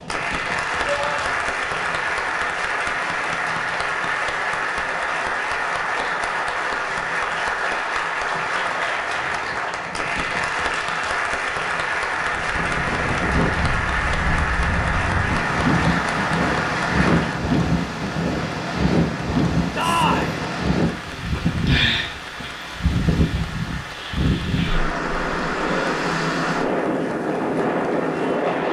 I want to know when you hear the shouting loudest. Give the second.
20 s.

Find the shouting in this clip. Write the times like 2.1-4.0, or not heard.
0.8-1.5, 19.8-20.4.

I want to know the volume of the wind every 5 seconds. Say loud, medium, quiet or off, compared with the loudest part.
off, off, medium, loud, loud, loud.